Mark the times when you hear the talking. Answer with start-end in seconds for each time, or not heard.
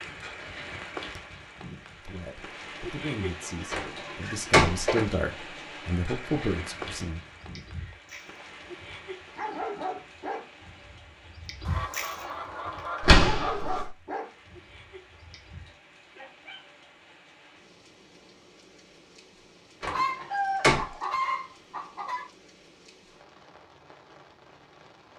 1.9-7.2.